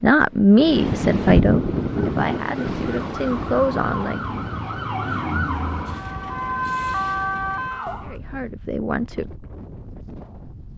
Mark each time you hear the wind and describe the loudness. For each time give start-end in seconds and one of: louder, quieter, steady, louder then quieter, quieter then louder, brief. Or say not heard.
0.1-10.7 quieter.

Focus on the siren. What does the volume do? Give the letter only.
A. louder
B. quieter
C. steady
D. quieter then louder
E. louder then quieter
A.